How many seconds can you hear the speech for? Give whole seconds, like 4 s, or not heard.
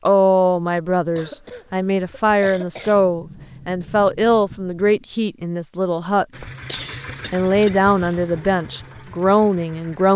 9 s.